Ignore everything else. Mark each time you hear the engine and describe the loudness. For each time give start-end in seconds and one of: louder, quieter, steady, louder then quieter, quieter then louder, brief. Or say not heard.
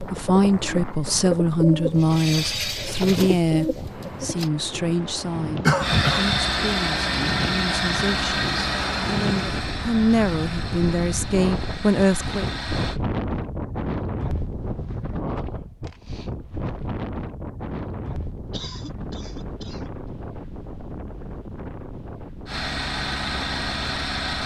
5.8-13.0 quieter
22.4-24.4 brief.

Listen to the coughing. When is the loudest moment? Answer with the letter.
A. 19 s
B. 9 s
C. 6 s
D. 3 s
C.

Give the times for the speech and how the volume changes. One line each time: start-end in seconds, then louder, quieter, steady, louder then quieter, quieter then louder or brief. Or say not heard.
0.0-12.5 quieter then louder.